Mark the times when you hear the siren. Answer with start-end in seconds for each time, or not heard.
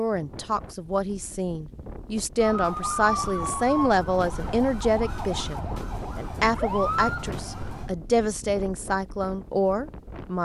2.4-7.9.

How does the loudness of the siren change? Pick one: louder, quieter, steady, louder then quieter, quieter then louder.
quieter then louder.